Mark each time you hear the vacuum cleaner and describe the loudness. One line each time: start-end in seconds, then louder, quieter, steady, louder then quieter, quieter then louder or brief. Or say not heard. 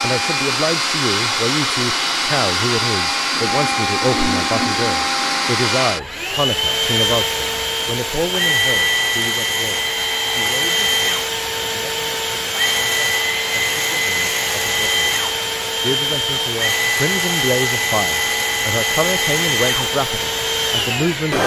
0.0-21.4 steady.